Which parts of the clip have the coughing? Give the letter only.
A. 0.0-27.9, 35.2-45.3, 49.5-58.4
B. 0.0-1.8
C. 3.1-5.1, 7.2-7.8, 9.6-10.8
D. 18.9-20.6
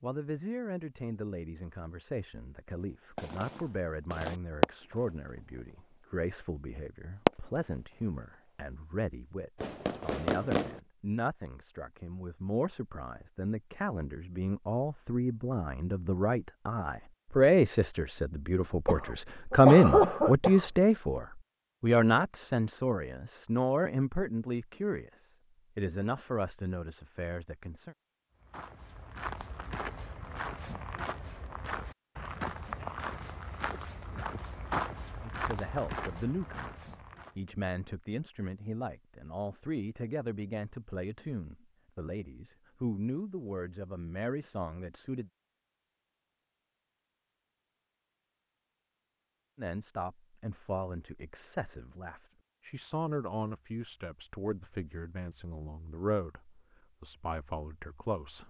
D.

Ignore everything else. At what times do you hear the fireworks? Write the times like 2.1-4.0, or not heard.
3.1-5.1, 7.2-7.8, 9.6-10.8.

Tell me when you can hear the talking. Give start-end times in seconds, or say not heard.
0.0-27.9, 35.2-45.3, 49.5-58.4.